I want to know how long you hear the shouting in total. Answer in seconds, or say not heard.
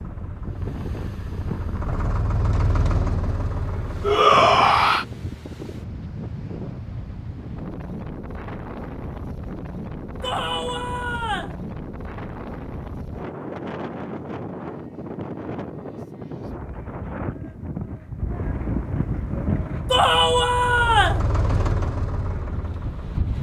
4 s.